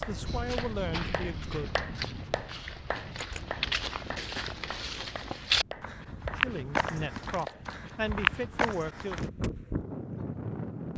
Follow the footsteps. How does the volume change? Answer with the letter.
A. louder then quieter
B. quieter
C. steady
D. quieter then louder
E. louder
E.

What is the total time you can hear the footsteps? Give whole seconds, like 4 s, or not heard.
9 s.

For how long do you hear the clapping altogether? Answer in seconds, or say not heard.
8 s.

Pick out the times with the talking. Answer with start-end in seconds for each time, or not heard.
0.0-1.8, 6.3-9.2.